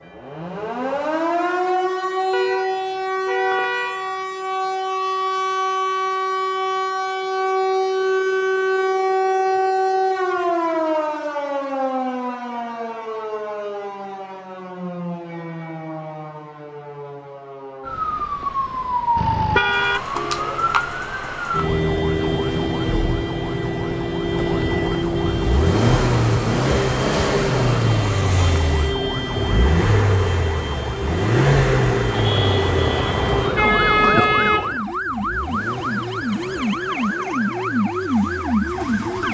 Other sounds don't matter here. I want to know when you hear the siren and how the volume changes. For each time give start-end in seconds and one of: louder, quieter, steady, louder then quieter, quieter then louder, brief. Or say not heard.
0.0-39.3 steady.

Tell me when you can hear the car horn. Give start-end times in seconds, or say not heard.
2.3-4.2, 19.1-20.1, 32.1-34.8.